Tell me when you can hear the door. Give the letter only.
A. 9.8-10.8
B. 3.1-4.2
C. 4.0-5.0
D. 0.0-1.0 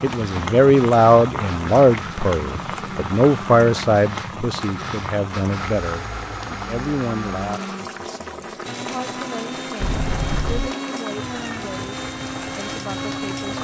A.